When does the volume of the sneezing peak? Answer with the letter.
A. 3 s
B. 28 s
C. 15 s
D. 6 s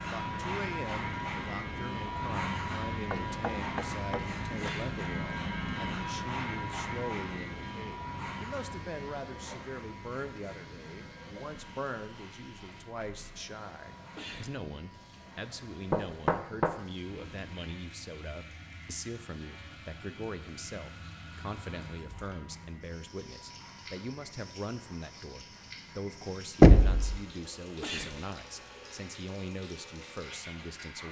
B.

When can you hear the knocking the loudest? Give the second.
27 s.